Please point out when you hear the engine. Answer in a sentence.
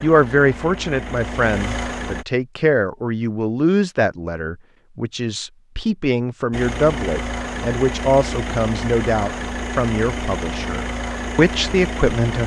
The engine can be heard from 0.0 to 2.2 s and from 6.5 to 12.4 s.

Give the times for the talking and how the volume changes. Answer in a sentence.
The talking can be heard from 0.0 to 12.4 s, at a steady volume.